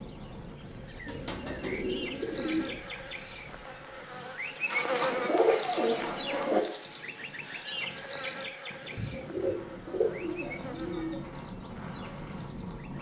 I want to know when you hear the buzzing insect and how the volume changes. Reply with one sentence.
The buzzing insect can be heard from 0.0 to 12.9 s, getting louder then quieter.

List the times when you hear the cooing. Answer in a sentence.
The cooing can be heard from 1.1 to 2.8 s, from 4.7 to 6.6 s and from 8.9 to 11.3 s.